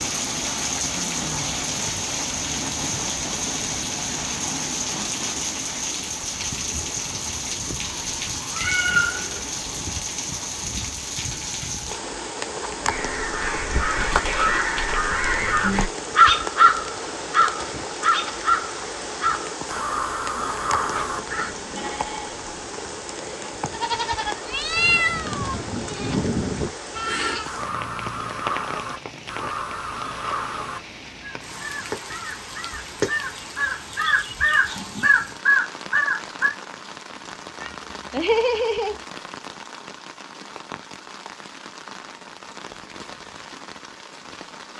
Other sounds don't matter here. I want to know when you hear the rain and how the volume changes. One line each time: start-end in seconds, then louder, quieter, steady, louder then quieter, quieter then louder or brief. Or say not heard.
0.0-44.7 quieter.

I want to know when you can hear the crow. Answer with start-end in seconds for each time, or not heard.
12.8-21.6, 27.0-36.5.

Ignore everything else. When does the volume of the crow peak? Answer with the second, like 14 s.
16 s.